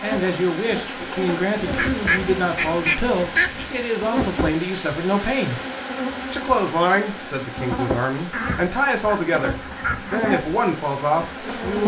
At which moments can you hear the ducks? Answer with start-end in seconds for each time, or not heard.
1.6-3.8, 8.3-10.3.